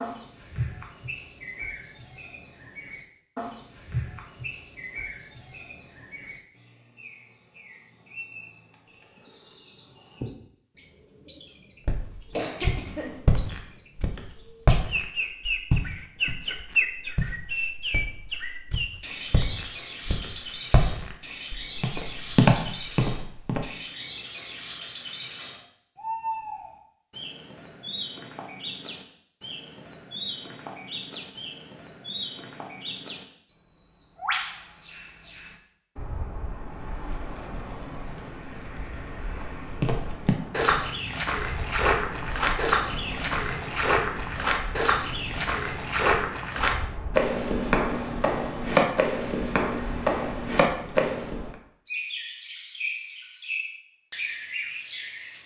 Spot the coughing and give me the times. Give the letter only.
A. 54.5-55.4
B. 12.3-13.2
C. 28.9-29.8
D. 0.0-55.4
B.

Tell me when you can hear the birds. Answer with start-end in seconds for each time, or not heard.
0.0-55.4.